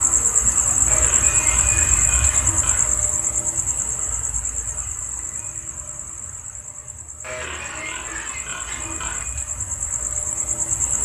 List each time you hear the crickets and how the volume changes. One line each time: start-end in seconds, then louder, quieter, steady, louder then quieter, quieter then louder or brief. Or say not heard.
0.0-10.9 quieter then louder.